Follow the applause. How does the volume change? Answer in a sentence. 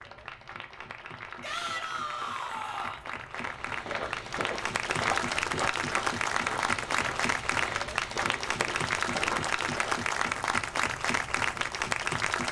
The volume of the applause goes up.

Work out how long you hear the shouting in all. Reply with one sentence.
The shouting can be heard for 2 seconds in total.